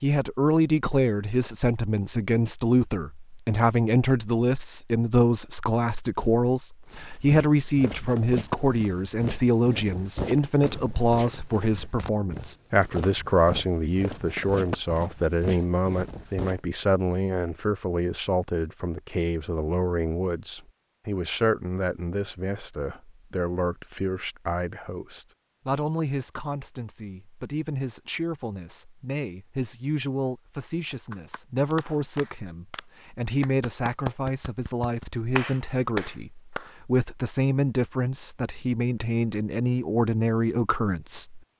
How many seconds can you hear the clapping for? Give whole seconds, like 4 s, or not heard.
6 s.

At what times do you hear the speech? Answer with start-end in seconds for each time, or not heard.
0.0-41.4.